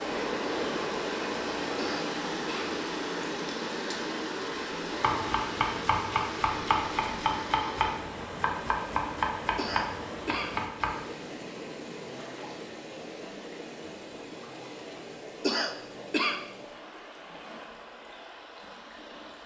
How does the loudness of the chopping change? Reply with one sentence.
The loudness of the chopping stays about the same.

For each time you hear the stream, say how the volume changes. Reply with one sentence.
You can hear the stream from 0.0 to 19.4 s, getting quieter.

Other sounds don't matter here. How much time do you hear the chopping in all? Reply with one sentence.
You can hear the chopping for 6 seconds altogether.